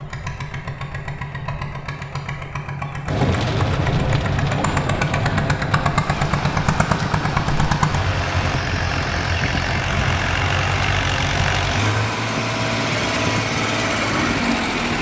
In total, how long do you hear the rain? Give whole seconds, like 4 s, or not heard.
12 s.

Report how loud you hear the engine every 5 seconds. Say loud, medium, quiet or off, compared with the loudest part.
medium, loud, loud.